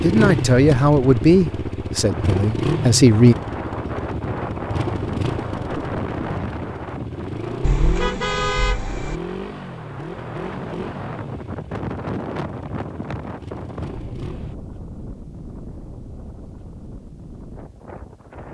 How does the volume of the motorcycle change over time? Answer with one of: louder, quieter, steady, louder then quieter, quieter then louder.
quieter.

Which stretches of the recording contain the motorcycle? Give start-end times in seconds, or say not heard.
0.0-14.6.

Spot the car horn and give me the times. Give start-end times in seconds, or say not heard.
7.6-9.2.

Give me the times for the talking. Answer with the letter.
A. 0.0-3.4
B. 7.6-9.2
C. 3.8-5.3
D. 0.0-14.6
A.